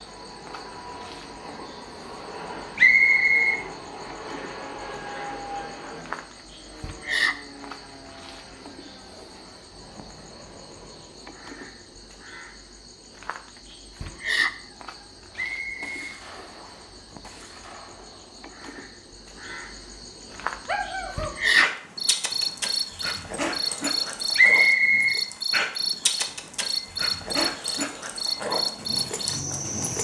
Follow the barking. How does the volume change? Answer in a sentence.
The loudness of the barking stays about the same.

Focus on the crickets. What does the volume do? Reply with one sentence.
The loudness of the crickets goes up.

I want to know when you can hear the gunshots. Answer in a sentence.
You can hear the gunshots from 15.3 to 18.5 s.